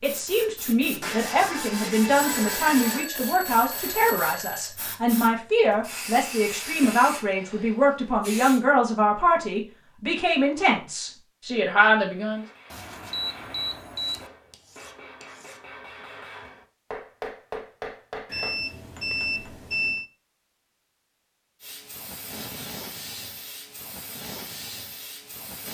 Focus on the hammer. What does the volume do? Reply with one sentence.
The loudness of the hammer goes up, then down.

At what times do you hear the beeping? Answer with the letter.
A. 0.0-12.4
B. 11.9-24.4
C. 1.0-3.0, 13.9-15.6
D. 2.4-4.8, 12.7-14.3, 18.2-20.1
D.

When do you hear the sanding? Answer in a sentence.
The sanding can be heard from 1.0 to 3.0 s and from 13.9 to 15.6 s.